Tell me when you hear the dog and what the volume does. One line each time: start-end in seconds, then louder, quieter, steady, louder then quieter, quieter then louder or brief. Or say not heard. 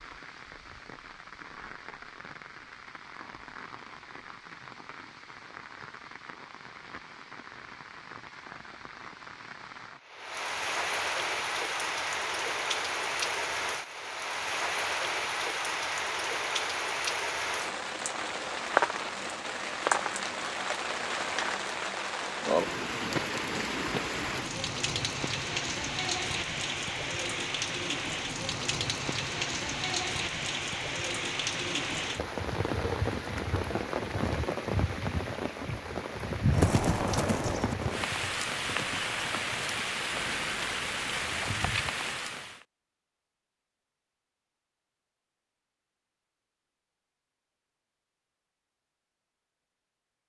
not heard.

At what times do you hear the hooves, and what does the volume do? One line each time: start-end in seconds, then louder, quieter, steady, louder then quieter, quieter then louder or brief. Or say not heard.
36.5-41.6 quieter.